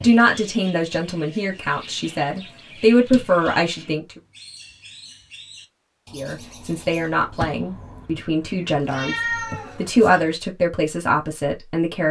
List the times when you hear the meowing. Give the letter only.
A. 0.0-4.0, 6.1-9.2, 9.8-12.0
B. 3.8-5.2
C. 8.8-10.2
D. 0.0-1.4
C.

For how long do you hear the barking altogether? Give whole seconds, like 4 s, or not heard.
not heard.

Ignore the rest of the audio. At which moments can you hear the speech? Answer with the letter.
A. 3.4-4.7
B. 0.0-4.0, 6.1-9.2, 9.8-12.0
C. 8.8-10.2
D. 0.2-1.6
B.